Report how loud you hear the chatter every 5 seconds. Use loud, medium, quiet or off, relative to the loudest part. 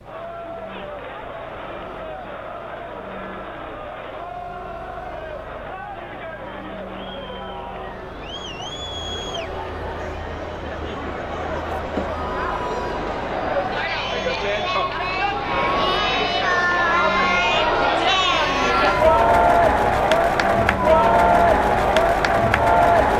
quiet, quiet, medium, loud, loud.